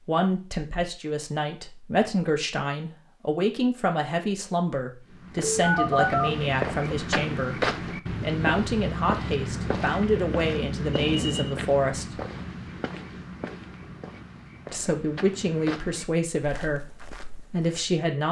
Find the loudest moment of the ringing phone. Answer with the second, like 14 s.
6 s.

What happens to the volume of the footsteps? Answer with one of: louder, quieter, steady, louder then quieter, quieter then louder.
quieter.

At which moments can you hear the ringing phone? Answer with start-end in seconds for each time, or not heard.
5.5-6.3, 10.9-11.6.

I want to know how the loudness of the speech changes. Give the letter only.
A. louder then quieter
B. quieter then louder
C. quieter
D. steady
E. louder
D.